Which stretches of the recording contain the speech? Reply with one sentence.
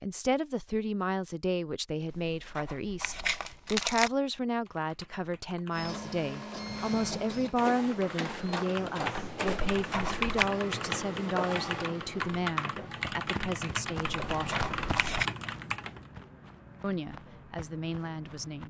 The speech can be heard from 0.0 to 14.7 s and from 16.8 to 18.6 s.